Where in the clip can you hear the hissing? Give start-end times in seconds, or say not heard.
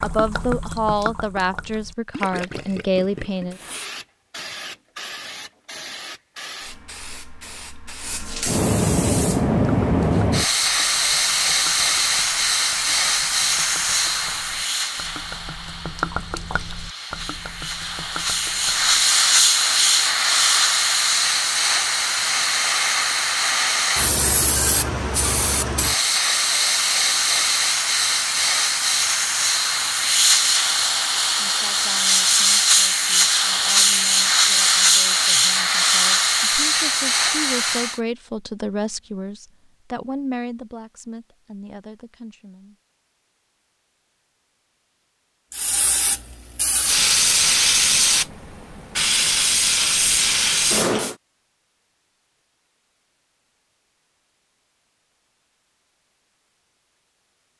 3.2-38.0, 45.5-51.1.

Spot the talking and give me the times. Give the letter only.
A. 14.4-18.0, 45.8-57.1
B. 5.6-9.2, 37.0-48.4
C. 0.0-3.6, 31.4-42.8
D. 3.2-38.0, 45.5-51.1
C.